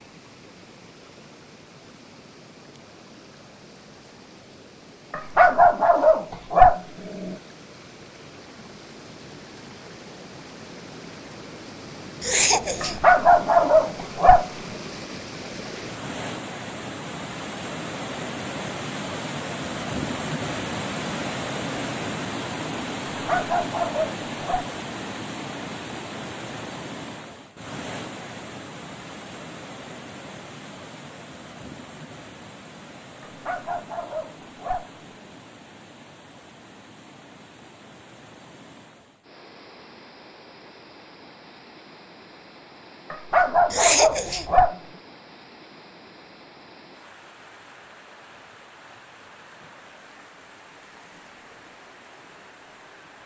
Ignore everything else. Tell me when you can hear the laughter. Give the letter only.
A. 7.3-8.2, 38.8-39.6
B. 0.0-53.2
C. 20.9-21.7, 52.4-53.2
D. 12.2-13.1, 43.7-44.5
D.